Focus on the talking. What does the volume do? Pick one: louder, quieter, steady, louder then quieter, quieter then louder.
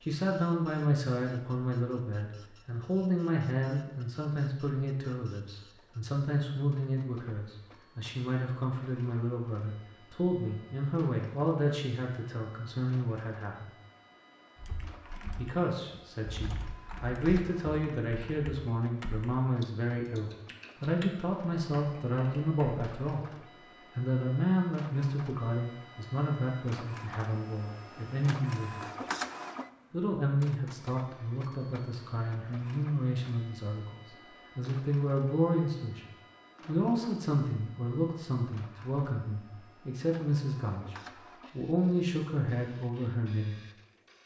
steady.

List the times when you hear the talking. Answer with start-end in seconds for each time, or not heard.
0.0-13.7, 15.3-28.9, 29.9-36.0, 36.6-43.6.